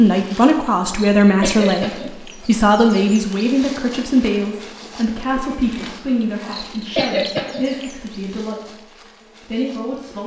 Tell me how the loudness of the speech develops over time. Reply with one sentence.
The volume of the speech goes down.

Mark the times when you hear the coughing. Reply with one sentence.
You can hear the coughing from 0.7 to 2.4 s and from 6.2 to 7.8 s.